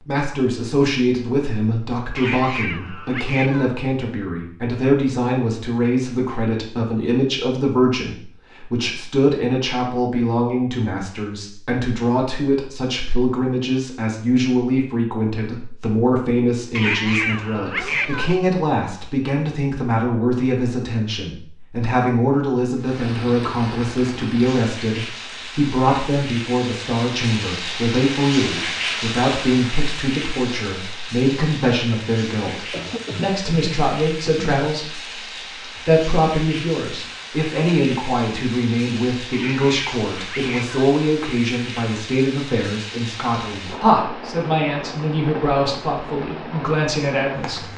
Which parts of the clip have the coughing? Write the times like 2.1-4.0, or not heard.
32.7-34.7.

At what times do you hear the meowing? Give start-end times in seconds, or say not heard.
2.1-3.8, 16.7-18.4, 39.3-40.9.